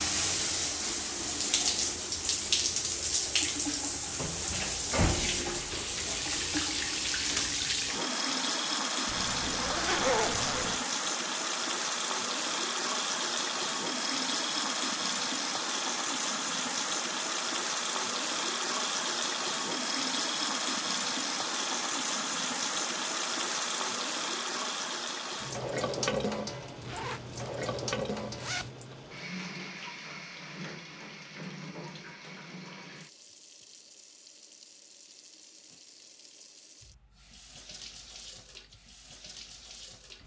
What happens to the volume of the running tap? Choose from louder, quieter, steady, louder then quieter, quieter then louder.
quieter.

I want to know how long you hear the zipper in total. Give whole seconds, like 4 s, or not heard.
4 s.